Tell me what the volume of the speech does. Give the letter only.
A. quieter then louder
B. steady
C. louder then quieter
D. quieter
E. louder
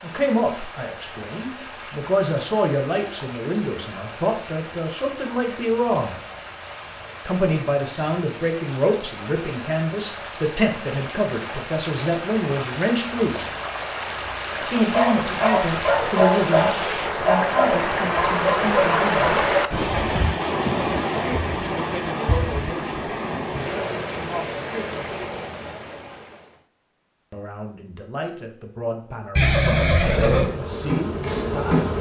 D.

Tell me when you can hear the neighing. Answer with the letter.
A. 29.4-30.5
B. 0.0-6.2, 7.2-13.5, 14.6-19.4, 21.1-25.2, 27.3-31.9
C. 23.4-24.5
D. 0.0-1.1
A.